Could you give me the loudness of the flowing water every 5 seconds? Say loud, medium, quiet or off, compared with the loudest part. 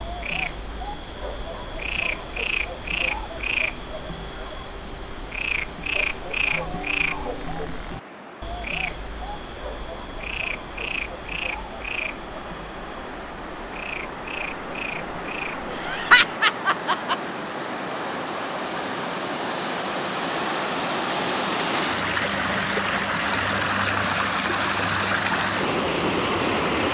quiet, quiet, quiet, medium, loud, loud.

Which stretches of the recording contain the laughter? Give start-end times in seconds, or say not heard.
15.7-17.1.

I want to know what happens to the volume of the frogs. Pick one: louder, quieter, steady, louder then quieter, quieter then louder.
quieter.